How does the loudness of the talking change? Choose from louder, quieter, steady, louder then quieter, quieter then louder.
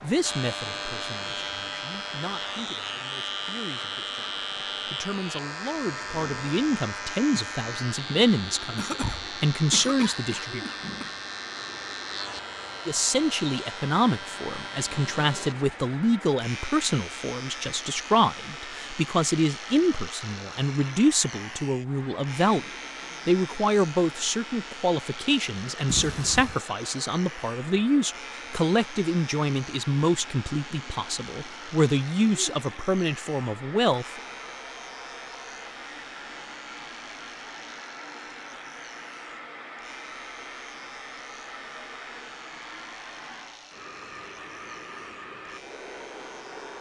louder.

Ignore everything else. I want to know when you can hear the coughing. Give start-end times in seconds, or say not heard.
8.8-11.2, 25.9-26.6.